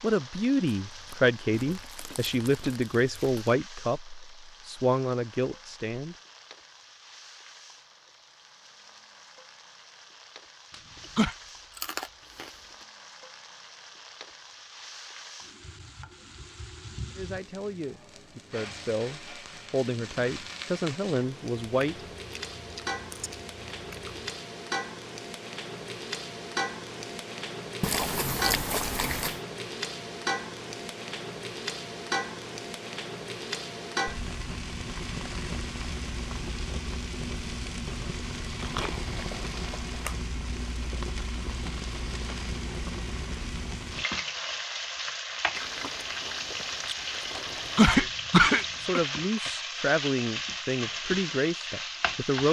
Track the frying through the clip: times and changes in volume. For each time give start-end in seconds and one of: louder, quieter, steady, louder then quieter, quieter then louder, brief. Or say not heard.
0.0-52.4 louder.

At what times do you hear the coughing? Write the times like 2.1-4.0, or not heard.
10.7-11.3, 47.4-49.0.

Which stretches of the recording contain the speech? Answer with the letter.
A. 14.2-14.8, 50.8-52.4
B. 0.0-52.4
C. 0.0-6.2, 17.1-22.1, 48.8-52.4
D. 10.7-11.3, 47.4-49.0
C.